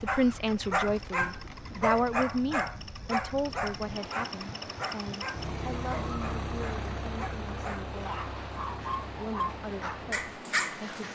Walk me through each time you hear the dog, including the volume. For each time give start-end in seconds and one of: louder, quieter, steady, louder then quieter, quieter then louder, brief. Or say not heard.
0.1-11.0 quieter then louder.